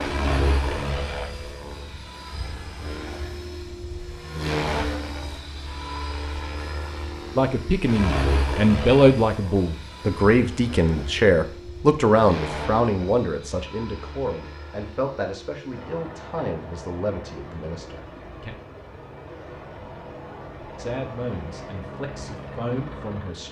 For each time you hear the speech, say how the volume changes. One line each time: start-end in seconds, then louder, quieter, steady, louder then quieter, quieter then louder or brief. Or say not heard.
7.3-18.6 quieter
20.8-23.4 brief.